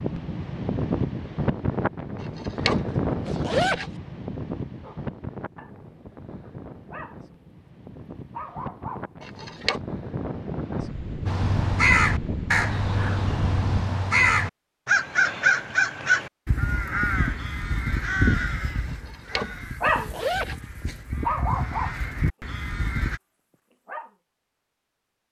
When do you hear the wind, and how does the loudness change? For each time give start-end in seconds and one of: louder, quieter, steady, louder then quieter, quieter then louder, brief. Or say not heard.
0.0-13.8 quieter then louder.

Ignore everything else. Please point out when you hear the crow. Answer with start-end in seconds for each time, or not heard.
11.2-23.2.